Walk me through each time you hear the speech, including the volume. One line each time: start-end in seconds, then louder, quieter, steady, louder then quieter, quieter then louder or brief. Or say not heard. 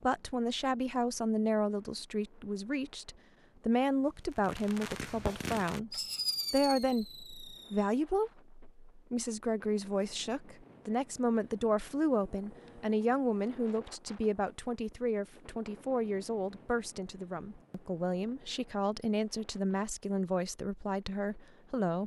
0.0-22.0 steady.